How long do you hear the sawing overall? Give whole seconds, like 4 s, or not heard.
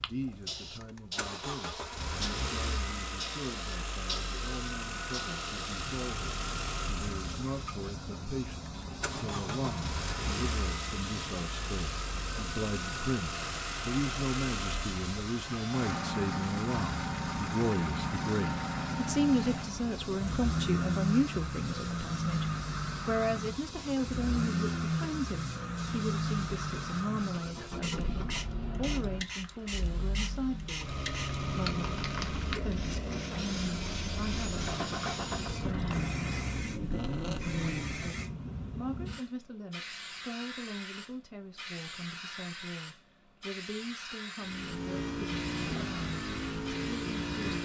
5 s.